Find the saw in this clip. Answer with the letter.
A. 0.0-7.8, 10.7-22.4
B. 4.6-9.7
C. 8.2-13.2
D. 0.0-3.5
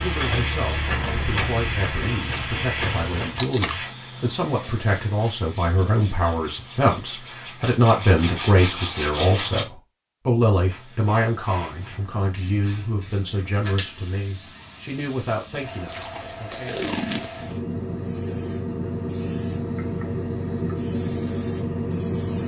B.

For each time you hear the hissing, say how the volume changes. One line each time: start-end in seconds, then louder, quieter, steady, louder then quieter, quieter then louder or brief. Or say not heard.
0.0-7.8 quieter
10.7-22.4 louder.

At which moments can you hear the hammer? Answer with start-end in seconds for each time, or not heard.
not heard.